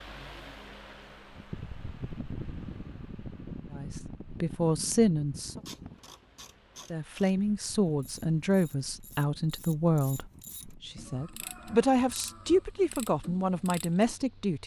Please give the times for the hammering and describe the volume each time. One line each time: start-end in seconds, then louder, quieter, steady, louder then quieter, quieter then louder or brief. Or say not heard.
not heard.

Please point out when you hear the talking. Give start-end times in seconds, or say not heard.
3.7-5.6, 6.9-14.6.